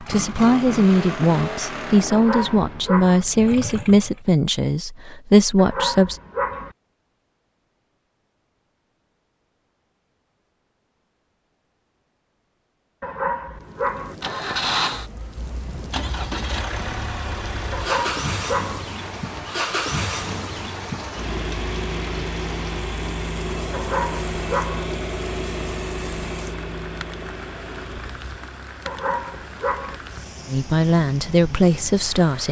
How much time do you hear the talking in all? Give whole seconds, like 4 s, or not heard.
8 s.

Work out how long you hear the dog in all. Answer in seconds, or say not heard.
7 s.